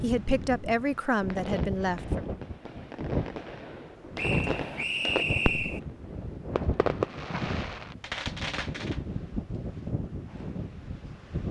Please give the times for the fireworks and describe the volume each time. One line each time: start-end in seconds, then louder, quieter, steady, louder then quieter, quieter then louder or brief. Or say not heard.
1.2-5.9 louder
6.5-8.9 brief.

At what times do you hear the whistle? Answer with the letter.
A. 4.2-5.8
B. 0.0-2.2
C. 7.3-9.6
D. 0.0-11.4
A.